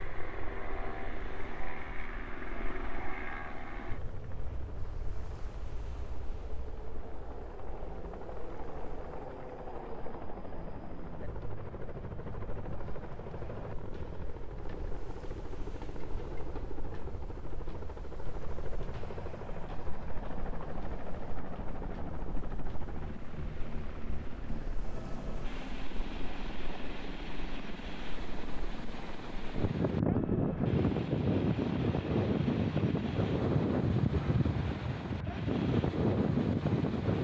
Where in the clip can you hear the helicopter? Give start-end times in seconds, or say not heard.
0.0-37.2.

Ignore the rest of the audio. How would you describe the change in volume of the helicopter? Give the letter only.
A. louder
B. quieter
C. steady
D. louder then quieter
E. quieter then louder
C.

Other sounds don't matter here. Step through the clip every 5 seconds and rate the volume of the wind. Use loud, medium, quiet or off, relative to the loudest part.
quiet, quiet, quiet, quiet, quiet, medium, loud, loud.